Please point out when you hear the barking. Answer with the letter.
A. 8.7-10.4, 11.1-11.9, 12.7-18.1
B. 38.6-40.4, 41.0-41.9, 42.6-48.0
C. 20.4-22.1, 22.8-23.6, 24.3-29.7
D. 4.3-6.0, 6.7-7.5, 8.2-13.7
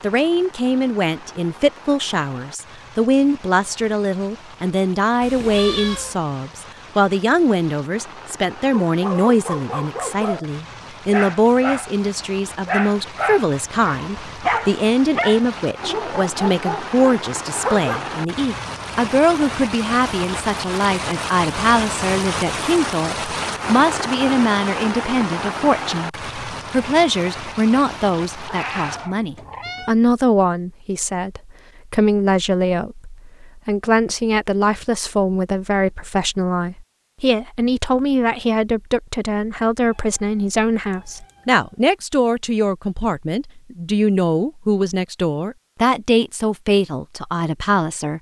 A.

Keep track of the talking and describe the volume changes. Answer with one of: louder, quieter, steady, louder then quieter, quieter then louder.
steady.